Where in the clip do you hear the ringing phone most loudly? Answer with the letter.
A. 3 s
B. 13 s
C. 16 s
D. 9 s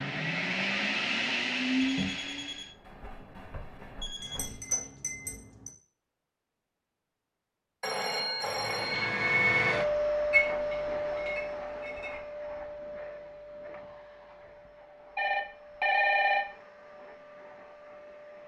C.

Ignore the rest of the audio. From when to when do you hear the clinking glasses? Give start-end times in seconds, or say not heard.
4.2-5.7, 10.3-12.2.